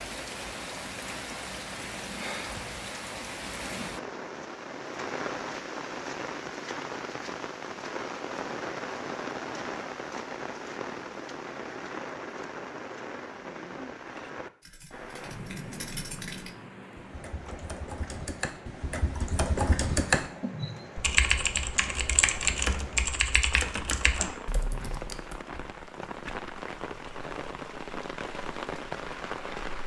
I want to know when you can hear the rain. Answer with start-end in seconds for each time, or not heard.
0.0-29.8.